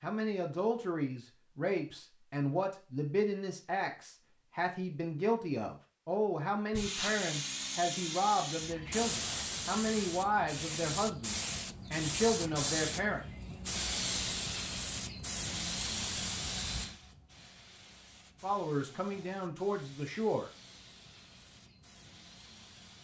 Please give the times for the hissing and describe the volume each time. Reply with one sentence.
The hissing can be heard from 6.7 to 22.9 s, getting quieter.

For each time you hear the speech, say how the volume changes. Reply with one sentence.
The speech can be heard from 0.0 to 13.2 s, at a steady volume; and briefly from 18.4 to 20.5 s.